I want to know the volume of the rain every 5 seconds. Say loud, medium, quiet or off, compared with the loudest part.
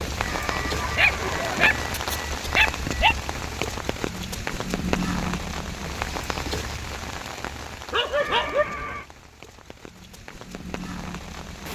loud, loud, medium.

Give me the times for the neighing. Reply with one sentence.
The neighing can be heard from 0.2 to 1.9 s and from 8.2 to 9.1 s.